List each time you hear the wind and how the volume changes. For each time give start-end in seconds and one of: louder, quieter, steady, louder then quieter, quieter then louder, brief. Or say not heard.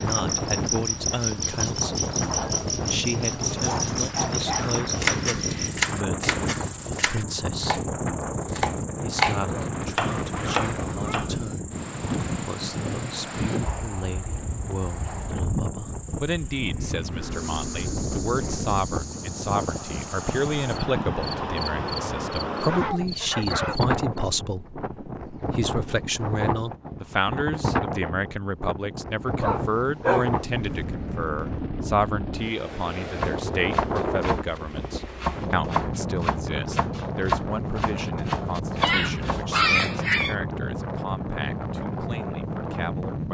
0.0-43.2 steady.